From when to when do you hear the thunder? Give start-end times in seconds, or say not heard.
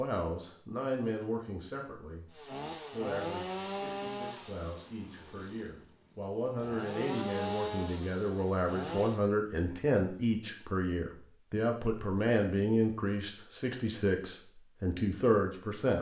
not heard.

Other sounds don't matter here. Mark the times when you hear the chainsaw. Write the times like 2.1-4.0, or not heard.
2.3-9.2.